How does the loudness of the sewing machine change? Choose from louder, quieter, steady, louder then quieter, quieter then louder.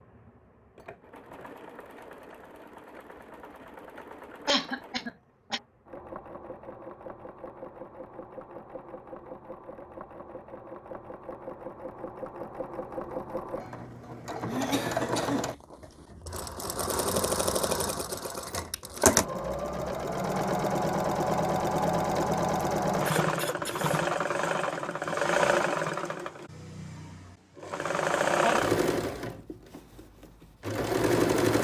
louder.